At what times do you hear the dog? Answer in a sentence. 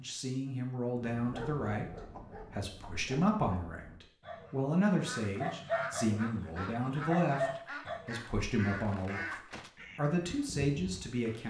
You can hear the dog from 1.1 to 8.1 s.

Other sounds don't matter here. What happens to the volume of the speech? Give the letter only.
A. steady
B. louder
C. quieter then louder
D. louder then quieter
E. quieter
A.